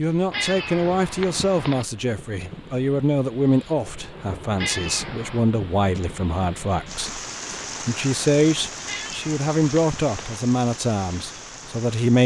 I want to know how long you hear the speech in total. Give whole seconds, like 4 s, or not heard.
12 s.